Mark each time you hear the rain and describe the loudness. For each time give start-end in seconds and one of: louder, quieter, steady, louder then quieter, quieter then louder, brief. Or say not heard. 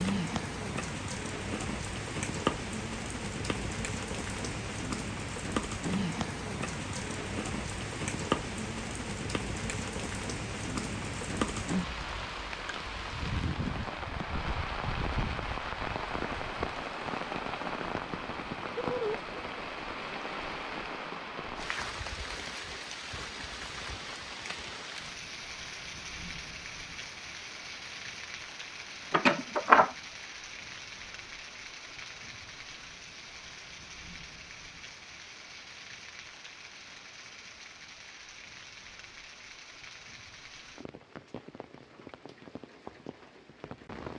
0.0-44.1 quieter.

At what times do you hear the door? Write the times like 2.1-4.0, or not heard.
29.1-29.9.